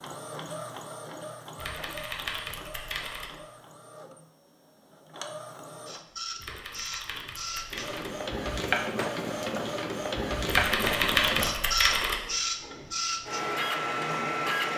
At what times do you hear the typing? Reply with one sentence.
You can hear the typing from 1.6 to 3.3 s, from 6.3 to 8.1 s and from 10.4 to 12.2 s.